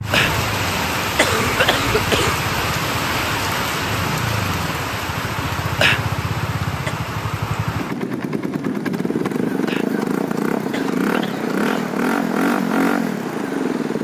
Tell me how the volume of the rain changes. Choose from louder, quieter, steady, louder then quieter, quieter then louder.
quieter.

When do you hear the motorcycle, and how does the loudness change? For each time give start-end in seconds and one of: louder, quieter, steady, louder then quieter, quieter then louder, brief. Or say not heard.
0.0-13.9 louder.